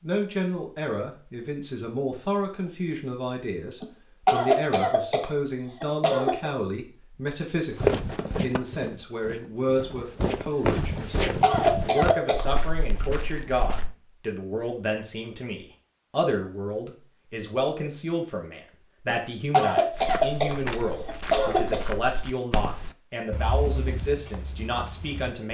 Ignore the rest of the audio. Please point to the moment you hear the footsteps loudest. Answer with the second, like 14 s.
8 s.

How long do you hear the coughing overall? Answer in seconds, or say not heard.
7 s.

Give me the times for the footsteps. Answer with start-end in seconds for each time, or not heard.
7.8-13.9, 19.9-25.4.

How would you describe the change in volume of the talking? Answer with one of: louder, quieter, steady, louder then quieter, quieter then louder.
steady.